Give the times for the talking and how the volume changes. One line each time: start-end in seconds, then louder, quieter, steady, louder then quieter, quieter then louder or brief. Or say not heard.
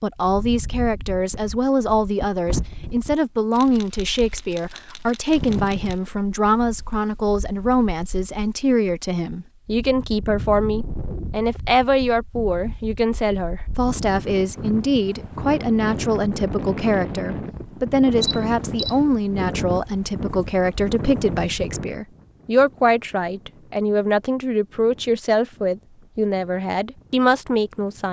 0.0-28.0 steady.